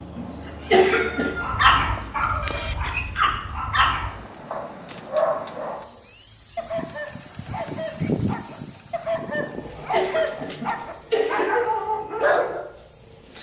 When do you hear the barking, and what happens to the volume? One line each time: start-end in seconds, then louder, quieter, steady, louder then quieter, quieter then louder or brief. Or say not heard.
1.4-12.7 quieter then louder.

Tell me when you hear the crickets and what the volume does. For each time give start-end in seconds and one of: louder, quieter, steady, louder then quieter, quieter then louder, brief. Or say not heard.
0.0-13.3 louder then quieter.